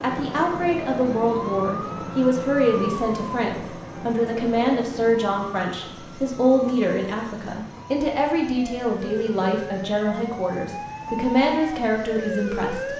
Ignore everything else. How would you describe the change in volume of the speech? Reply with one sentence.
The volume of the speech stays about the same.